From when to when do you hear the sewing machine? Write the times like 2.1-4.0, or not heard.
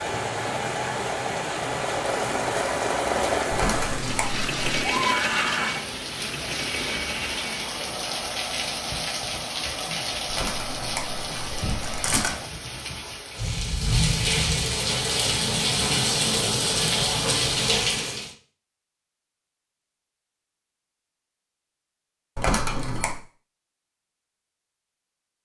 0.0-12.5.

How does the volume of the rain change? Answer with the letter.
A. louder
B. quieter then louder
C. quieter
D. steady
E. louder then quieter
A.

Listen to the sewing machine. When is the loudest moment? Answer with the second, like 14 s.
3 s.